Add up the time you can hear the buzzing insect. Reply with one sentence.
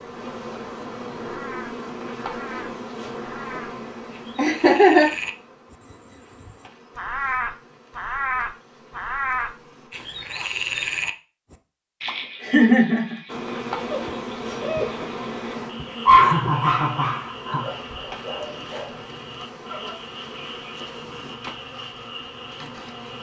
The buzzing insect can be heard for 20 seconds in total.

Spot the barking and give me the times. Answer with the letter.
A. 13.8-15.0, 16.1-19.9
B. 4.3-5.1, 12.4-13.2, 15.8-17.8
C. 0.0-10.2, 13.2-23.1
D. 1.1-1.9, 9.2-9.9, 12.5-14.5
A.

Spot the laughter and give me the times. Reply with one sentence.
The laughter can be heard from 4.3 to 5.1 s, from 12.4 to 13.2 s and from 15.8 to 17.8 s.